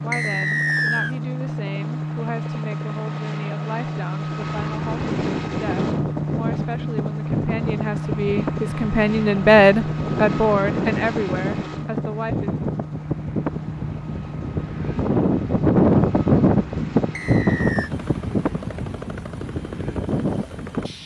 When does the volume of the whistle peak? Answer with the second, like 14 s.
1 s.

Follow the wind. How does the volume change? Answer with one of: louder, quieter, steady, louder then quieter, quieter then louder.
louder then quieter.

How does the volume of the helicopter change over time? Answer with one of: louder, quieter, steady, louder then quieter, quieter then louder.
quieter.